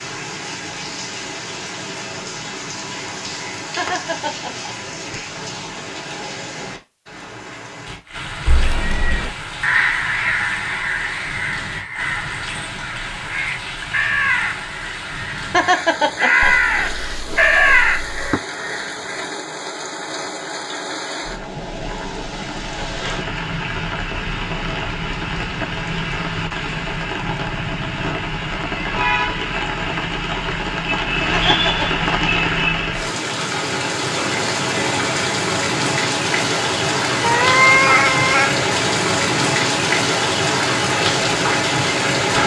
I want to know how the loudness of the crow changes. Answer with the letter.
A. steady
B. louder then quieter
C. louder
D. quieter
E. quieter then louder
E.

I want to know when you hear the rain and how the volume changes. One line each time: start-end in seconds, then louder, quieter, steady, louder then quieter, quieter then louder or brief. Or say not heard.
0.0-42.4 louder.